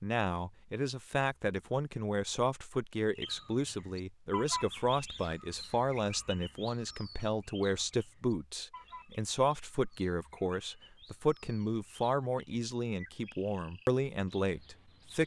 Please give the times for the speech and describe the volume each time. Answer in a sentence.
The speech can be heard from 0.0 to 15.2 s, at a steady volume.